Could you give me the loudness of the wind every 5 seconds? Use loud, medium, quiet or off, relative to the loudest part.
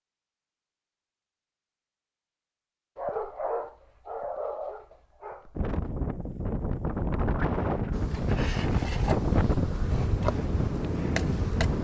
off, loud, loud.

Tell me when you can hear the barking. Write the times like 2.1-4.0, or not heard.
3.0-5.8.